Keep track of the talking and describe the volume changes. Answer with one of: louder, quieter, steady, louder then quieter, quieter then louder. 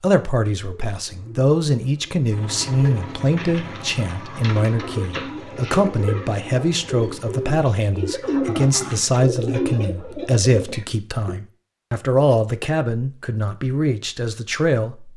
steady.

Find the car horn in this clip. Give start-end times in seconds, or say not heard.
not heard.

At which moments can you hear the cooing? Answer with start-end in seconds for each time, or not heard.
0.8-11.3.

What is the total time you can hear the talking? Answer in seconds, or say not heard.
15 s.